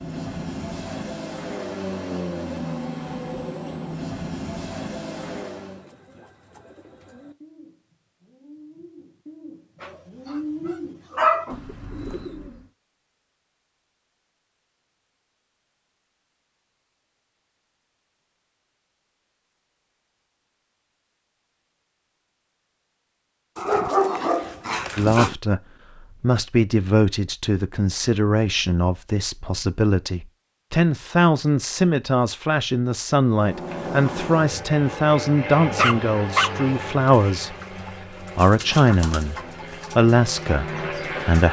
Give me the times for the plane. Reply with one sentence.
The plane can be heard from 0.0 to 5.8 s and from 33.3 to 41.4 s.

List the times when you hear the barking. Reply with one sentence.
You can hear the barking from 9.8 to 11.6 s, from 23.6 to 25.4 s and from 35.8 to 36.7 s.